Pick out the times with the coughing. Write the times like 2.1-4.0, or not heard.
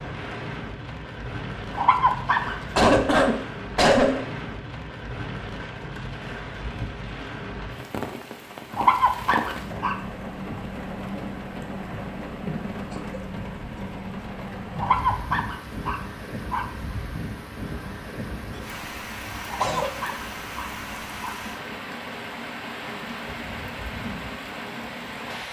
2.8-4.2, 12.9-14.2, 18.5-20.1.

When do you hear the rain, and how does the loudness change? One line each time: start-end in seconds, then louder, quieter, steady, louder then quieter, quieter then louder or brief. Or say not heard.
0.0-25.4 steady.